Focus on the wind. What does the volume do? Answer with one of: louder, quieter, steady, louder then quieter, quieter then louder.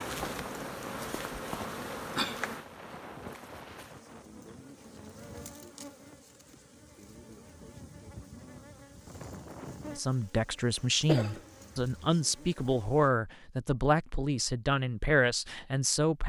quieter then louder.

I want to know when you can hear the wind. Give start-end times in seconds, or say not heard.
0.0-10.0.